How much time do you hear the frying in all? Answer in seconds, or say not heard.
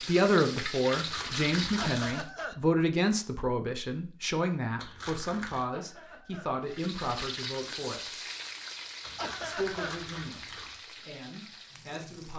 8 s.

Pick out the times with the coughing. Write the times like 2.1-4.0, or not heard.
1.8-2.5, 5.7-6.5, 9.2-9.9.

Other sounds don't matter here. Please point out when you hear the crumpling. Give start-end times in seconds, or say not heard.
0.9-2.2, 4.8-5.7, 9.0-10.8.